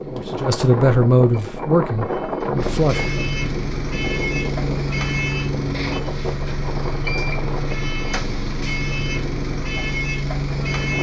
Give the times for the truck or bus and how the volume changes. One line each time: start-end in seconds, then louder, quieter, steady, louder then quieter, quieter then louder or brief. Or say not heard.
0.0-10.9 louder.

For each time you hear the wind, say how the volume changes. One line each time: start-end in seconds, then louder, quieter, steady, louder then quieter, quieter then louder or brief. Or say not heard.
0.0-10.9 quieter.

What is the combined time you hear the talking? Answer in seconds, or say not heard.
3 s.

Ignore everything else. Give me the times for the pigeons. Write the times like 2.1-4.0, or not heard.
not heard.